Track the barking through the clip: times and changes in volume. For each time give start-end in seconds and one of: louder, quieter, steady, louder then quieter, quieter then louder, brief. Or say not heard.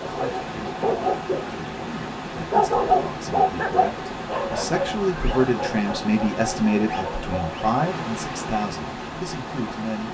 0.0-7.8 louder then quieter.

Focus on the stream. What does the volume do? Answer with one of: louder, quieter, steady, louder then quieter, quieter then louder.
steady.